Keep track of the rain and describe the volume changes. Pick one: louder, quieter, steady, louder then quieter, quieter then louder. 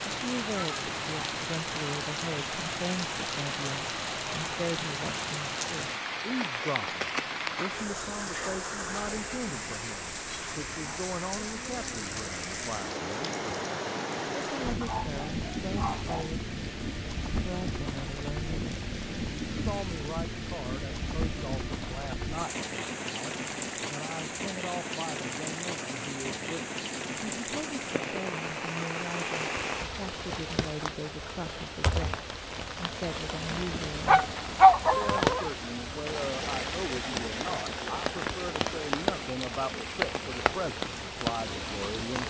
steady.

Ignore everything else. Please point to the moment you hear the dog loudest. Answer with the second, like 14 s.
35 s.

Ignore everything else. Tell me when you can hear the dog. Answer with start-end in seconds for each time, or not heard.
14.8-16.4, 34.0-35.5.